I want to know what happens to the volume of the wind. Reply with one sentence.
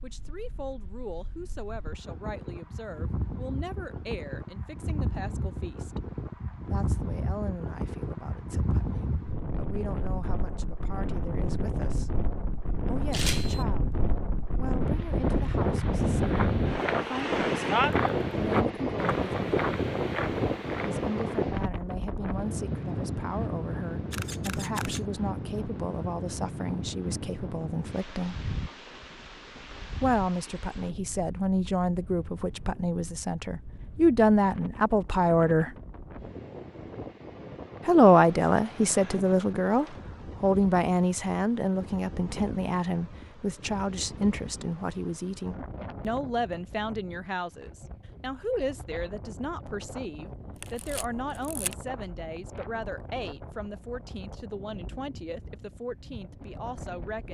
The loudness of the wind goes up, then down.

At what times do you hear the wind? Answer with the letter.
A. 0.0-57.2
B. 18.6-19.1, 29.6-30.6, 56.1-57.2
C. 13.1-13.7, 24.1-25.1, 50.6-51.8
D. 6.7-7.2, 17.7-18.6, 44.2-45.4
A.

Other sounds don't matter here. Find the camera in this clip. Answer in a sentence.
The camera can be heard from 13.1 to 13.7 s, from 24.1 to 25.1 s and from 50.6 to 51.8 s.